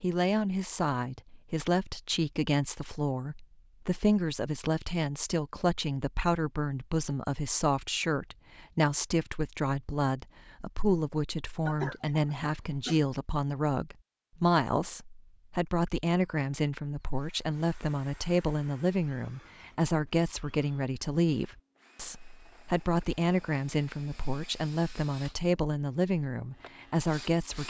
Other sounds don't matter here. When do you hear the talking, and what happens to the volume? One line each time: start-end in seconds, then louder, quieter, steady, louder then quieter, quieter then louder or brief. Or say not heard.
0.0-27.6 steady.